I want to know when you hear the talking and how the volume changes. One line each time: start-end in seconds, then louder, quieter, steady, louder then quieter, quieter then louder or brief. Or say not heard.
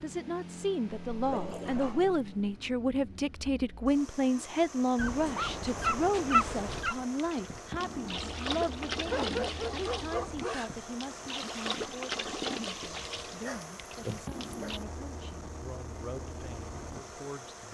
0.0-17.6 quieter.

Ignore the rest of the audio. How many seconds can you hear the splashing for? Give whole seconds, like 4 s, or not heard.
8 s.